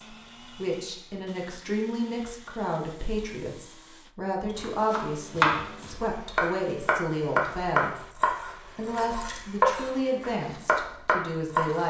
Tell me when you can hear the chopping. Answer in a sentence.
The chopping can be heard from 4.5 to 11.8 s.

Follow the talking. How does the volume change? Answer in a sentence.
The volume of the talking stays about the same.